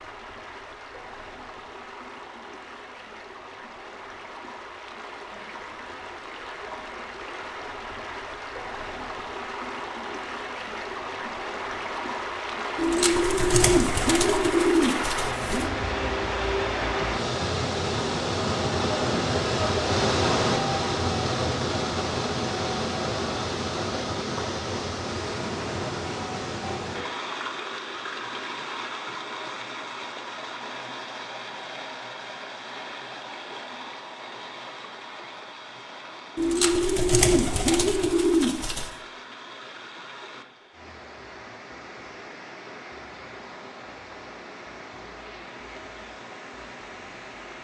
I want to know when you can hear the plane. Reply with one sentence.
You can't hear the plane here.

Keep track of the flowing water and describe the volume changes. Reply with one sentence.
The volume of the flowing water goes up, then down.